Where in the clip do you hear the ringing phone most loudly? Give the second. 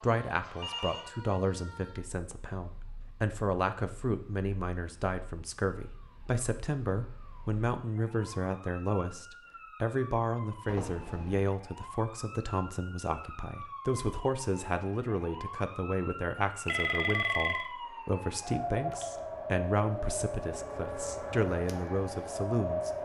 17 s.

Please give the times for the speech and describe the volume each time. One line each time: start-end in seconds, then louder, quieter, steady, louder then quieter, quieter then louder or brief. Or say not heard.
0.0-22.9 steady.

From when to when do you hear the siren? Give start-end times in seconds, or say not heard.
0.0-23.0.